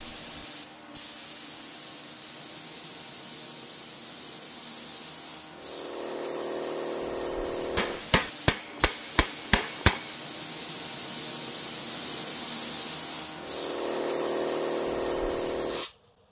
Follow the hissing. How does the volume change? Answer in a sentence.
The volume of the hissing goes up.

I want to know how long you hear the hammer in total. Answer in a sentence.
You can hear the hammer for 2 seconds altogether.